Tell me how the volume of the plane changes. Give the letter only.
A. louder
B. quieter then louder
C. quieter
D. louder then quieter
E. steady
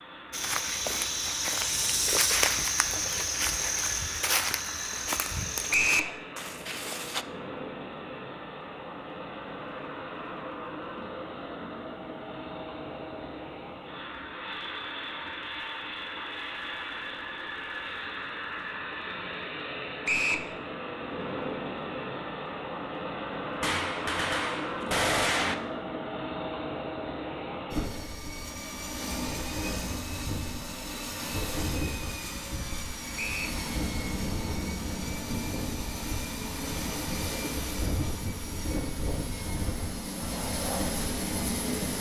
A.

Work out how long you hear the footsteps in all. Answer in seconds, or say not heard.
7 s.